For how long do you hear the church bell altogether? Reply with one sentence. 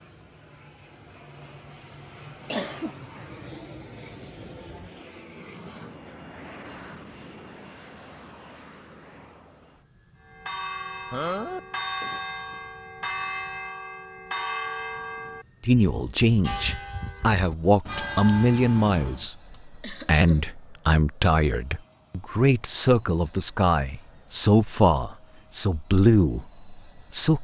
You can hear the church bell for 9 seconds altogether.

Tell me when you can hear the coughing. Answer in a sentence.
The coughing can be heard from 2.5 to 3.2 s, from 11.1 to 12.2 s and from 19.5 to 20.4 s.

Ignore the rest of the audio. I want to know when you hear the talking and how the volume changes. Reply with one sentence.
You can hear the talking from 15.6 to 27.3 s, at a steady volume.